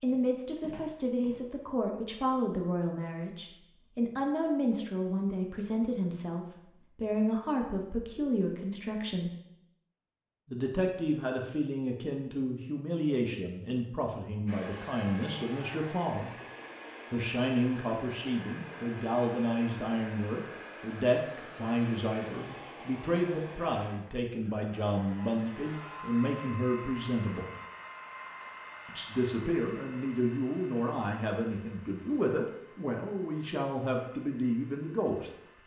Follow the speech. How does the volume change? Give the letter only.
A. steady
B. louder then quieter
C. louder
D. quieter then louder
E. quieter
A.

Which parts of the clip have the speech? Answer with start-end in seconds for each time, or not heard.
0.0-9.3, 10.4-16.3, 17.1-27.5, 28.9-35.6.